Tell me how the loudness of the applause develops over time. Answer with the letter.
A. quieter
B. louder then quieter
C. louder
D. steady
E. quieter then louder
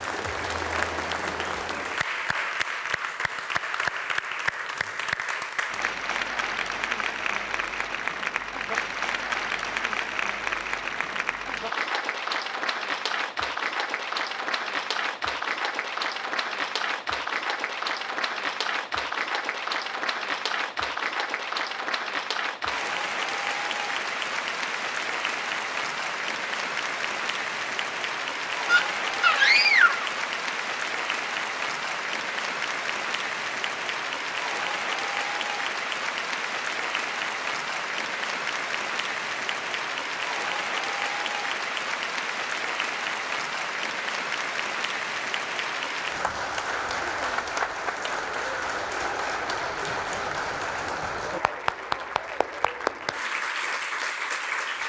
D.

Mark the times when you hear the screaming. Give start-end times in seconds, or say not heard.
28.6-30.1.